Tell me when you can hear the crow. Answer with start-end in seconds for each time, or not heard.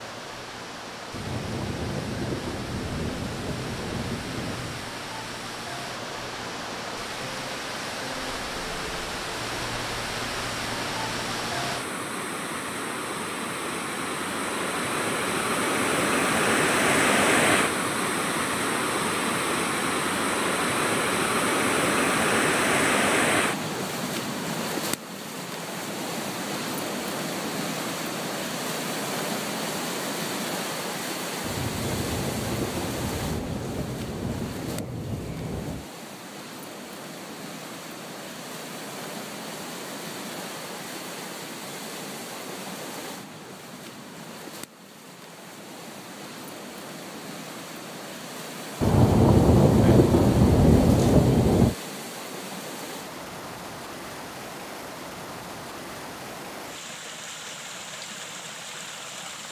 not heard.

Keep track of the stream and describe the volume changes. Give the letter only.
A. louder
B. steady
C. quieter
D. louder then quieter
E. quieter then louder
D.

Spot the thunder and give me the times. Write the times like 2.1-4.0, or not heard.
1.1-4.8, 31.4-35.9, 48.8-51.8.